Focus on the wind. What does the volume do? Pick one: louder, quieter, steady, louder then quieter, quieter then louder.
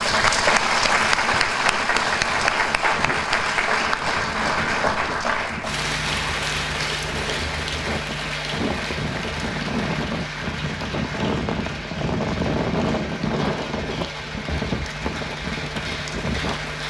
louder.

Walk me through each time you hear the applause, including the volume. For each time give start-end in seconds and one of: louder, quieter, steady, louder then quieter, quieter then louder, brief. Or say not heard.
0.0-16.8 quieter.